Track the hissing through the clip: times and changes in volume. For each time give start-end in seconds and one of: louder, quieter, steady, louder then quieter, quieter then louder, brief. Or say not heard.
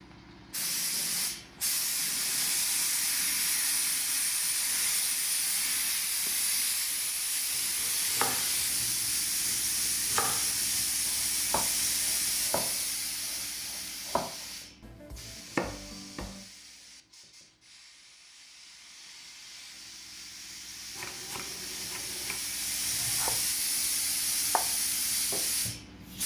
0.0-26.2 quieter then louder.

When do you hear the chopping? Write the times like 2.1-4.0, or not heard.
7.5-16.4, 20.9-24.7, 25.3-26.2.